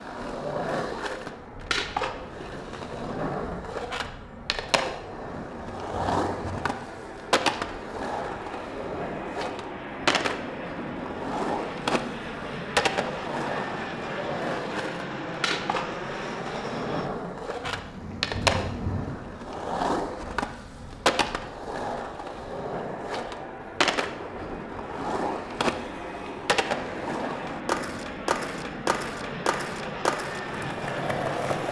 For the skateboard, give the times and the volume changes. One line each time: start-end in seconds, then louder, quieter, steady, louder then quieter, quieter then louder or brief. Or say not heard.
0.0-31.6 steady.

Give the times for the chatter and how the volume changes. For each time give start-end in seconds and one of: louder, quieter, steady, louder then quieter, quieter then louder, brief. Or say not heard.
not heard.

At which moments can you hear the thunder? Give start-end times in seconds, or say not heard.
5.5-6.7, 17.6-19.1.